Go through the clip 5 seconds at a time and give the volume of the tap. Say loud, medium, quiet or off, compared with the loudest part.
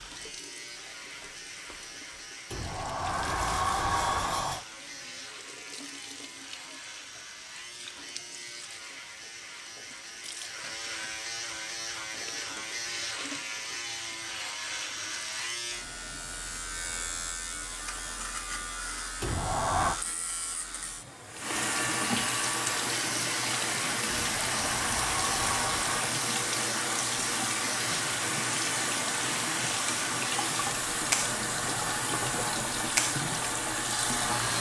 quiet, quiet, quiet, quiet, loud, loud, loud.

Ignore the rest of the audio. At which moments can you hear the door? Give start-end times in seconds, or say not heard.
2.5-4.7, 19.2-20.0, 24.1-26.2.